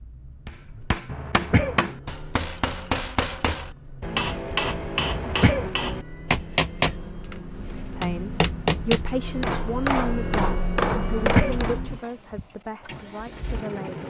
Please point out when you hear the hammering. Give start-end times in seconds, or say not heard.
0.5-11.8.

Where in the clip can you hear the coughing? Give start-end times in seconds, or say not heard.
1.1-1.8, 5.0-5.7, 10.9-11.7.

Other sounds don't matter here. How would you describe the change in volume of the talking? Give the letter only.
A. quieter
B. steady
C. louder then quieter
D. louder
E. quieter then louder
A.